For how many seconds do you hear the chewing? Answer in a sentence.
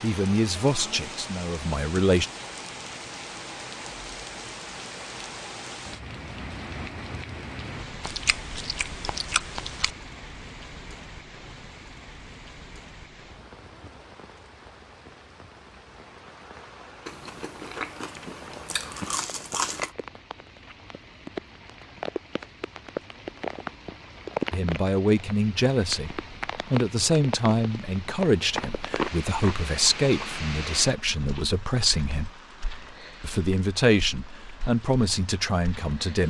The chewing can be heard for 7 seconds in total.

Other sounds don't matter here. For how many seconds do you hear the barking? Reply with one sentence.
The barking can't be heard in this clip.